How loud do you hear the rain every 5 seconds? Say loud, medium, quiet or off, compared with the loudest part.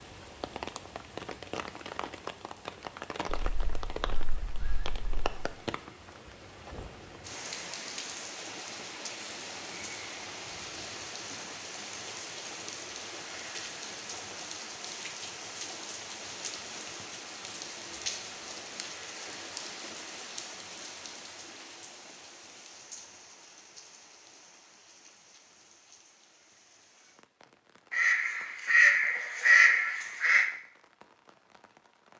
loud, loud, loud, loud, medium, quiet, quiet.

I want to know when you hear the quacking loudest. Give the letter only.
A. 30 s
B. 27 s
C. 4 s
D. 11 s
A.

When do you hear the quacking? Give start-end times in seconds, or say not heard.
3.4-5.3, 27.9-30.4.